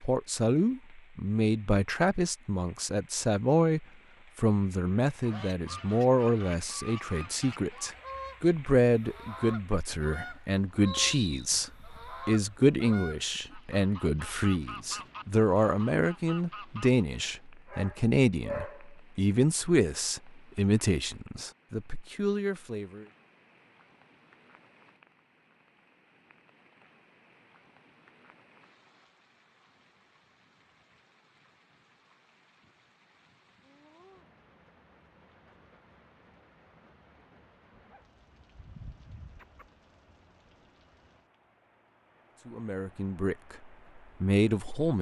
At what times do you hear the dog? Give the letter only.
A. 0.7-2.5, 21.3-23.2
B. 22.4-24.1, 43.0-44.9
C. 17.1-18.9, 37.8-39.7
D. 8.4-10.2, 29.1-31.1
C.